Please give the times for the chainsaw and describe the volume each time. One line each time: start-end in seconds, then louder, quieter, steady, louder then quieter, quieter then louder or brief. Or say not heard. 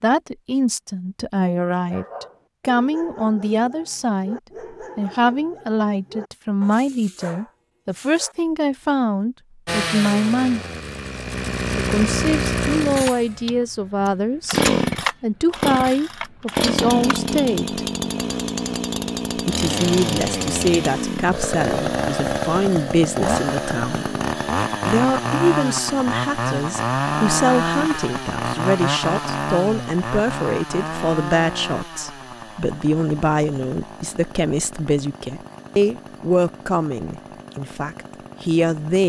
9.7-39.0 quieter.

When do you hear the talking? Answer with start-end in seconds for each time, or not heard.
0.0-10.6, 11.8-17.8, 19.4-24.1, 24.9-39.0.